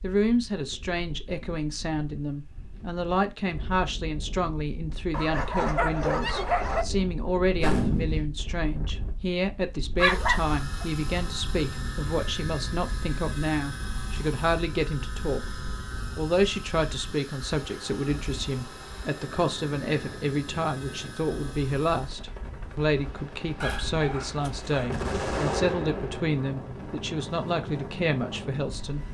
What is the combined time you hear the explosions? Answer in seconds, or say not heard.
2 s.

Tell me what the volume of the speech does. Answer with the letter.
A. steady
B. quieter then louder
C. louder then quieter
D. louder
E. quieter
A.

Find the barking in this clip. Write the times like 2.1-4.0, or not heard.
5.1-6.8, 9.9-10.8, 23.6-25.6.